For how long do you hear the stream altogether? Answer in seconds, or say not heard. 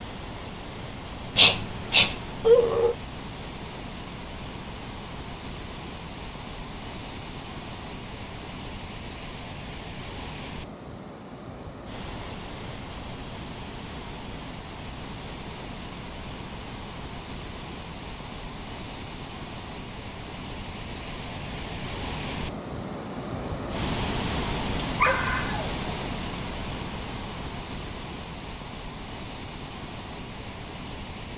31 s.